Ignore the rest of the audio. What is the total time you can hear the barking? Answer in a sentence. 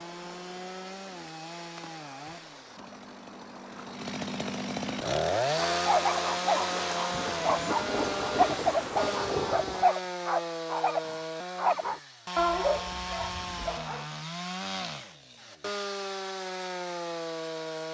The barking can be heard for 8 seconds in total.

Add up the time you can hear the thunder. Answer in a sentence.
The thunder can be heard for 3 seconds in total.